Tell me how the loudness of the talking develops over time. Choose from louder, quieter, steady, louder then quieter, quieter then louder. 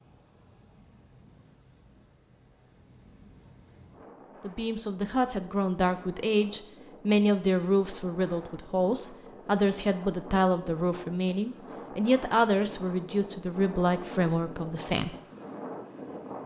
steady.